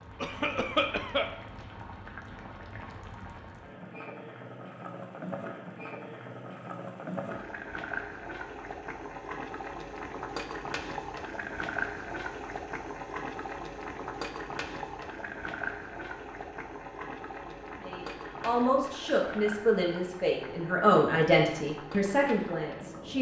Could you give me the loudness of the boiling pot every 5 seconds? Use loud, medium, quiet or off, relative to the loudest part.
medium, loud, loud, loud, medium.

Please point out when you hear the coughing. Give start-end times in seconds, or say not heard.
0.2-1.3.